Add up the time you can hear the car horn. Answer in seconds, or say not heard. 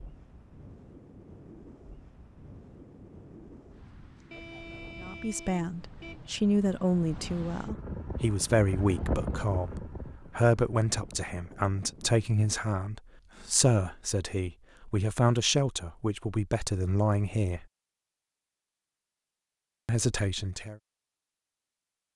2 s.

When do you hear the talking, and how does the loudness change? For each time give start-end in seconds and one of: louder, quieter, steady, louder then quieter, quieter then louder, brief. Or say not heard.
5.0-17.6 steady
19.9-20.8 brief.